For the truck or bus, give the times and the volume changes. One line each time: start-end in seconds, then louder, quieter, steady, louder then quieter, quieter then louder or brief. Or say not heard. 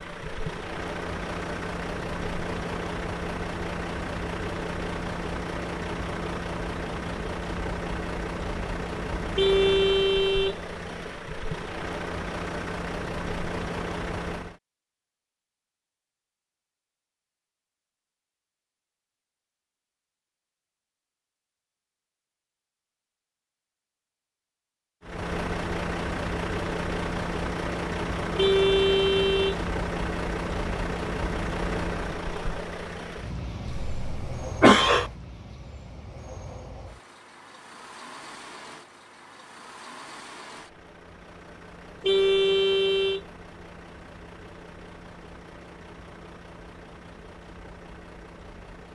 0.0-14.6 steady
25.0-48.9 quieter.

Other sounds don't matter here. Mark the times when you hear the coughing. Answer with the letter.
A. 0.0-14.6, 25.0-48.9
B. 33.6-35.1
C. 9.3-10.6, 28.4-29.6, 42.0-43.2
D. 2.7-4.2
B.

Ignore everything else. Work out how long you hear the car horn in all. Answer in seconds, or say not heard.
4 s.